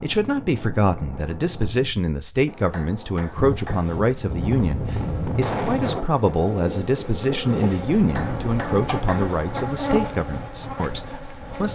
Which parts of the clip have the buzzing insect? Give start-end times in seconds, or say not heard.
3.6-11.7.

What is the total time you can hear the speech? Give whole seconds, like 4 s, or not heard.
12 s.